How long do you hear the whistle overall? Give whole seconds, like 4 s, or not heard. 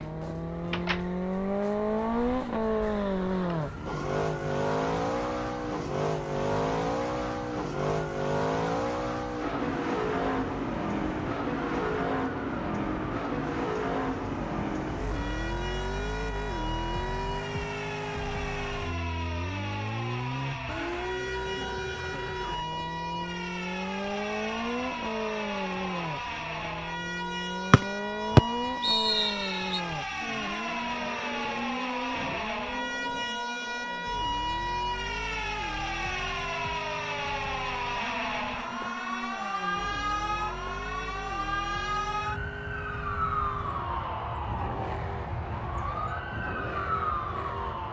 2 s.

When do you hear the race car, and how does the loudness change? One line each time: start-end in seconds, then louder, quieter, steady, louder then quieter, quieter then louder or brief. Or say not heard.
0.0-47.8 quieter.